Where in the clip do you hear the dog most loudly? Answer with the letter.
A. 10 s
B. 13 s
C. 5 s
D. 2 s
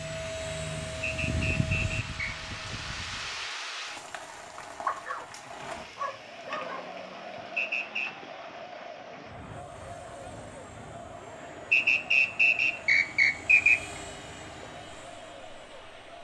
C.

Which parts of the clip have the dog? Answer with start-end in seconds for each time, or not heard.
4.8-6.8.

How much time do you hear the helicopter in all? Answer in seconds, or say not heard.
10 s.